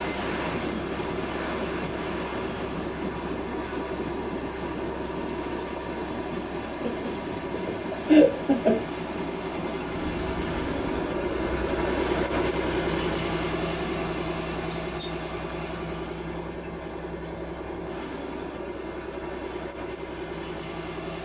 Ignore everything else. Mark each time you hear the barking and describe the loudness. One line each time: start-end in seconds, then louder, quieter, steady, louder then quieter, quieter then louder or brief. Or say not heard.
not heard.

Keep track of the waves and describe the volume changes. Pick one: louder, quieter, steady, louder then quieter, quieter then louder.
quieter.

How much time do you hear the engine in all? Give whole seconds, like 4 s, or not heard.
21 s.